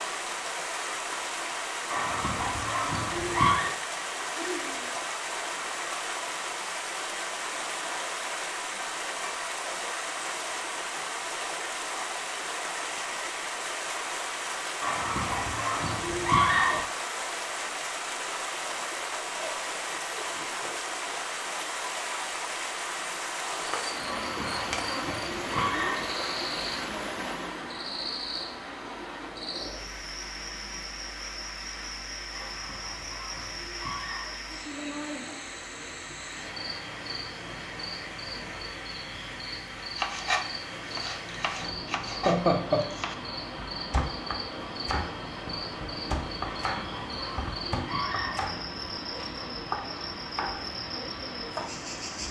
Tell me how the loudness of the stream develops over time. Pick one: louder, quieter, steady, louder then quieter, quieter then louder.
quieter.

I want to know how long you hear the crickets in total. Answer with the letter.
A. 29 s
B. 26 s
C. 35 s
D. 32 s
A.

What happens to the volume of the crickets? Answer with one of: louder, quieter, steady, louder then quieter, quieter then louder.
steady.